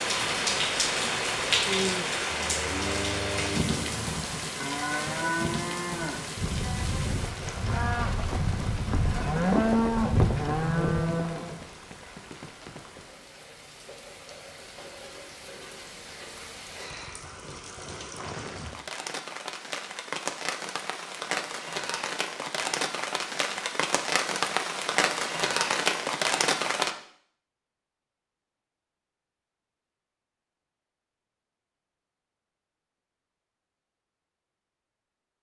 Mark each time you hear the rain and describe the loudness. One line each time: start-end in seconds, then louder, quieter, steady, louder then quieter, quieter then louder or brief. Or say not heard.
0.0-26.9 quieter then louder.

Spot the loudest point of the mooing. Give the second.
10 s.